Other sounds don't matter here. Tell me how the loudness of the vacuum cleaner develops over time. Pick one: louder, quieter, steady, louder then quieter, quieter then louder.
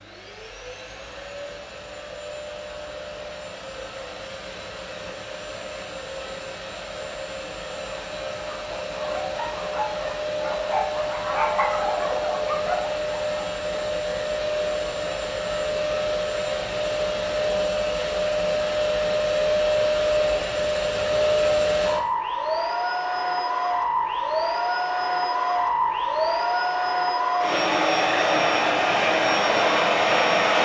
louder.